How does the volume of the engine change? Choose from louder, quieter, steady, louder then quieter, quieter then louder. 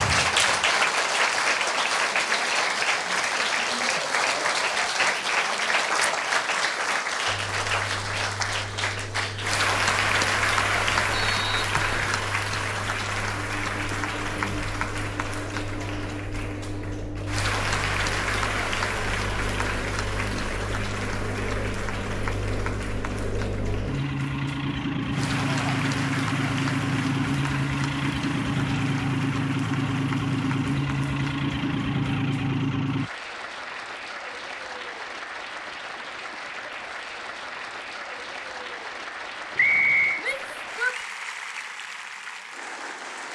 louder.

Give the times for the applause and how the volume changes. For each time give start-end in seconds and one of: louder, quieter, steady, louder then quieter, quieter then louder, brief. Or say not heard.
0.0-43.2 quieter.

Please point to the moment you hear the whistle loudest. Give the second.
40 s.